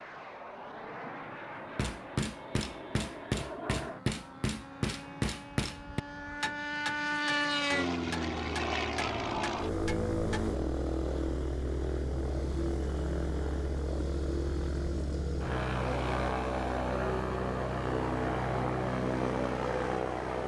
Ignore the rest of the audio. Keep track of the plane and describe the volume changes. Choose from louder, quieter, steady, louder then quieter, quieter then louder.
louder.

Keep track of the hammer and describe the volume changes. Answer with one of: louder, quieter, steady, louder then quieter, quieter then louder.
quieter.